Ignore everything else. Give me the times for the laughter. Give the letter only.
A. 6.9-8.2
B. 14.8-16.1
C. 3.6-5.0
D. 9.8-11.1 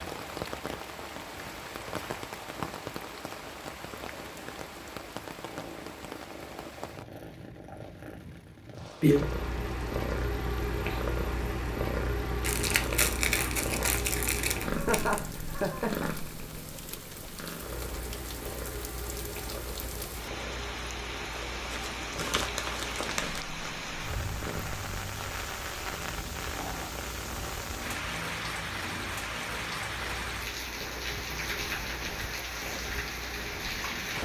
B.